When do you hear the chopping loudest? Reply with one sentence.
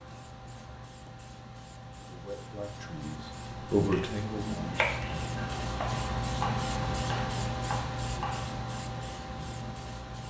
The loudest moment of the chopping is at 5 seconds.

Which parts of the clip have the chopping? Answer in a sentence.
You can hear the chopping from 3.9 to 8.5 s.